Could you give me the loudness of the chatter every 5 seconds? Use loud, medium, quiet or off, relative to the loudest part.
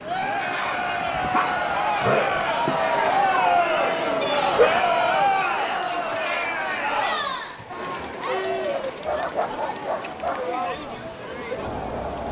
loud, loud, medium.